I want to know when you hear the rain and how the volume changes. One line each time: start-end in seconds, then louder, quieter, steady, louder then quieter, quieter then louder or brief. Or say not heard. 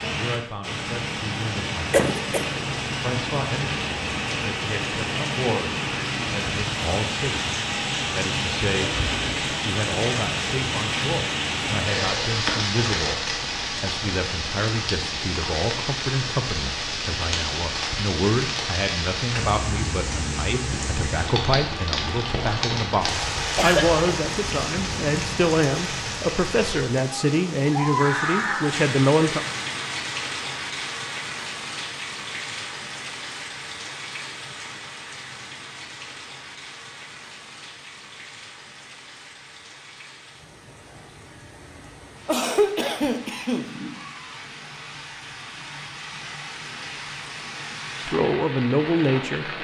0.0-49.5 quieter.